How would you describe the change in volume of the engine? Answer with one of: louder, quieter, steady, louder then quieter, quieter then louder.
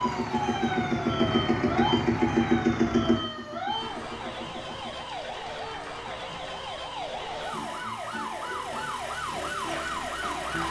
quieter.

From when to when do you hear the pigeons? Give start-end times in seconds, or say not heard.
not heard.